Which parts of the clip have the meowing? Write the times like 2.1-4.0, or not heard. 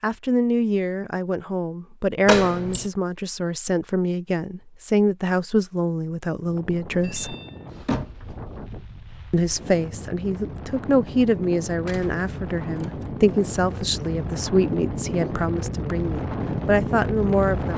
not heard.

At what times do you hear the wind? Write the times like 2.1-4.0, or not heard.
6.3-17.7.